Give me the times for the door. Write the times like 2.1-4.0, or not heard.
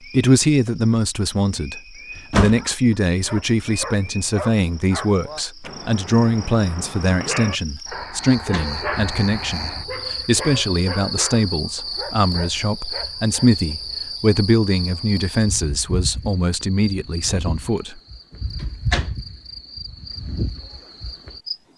2.1-2.6, 8.2-8.8, 18.6-19.2.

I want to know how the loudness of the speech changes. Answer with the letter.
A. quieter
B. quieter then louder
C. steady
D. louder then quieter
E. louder
C.